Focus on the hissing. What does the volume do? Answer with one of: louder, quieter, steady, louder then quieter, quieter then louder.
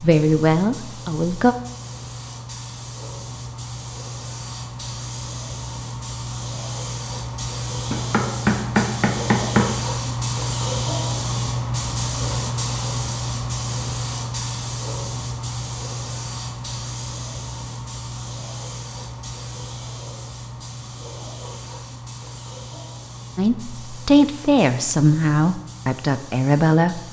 louder then quieter.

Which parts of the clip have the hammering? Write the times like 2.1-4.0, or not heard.
7.9-9.7.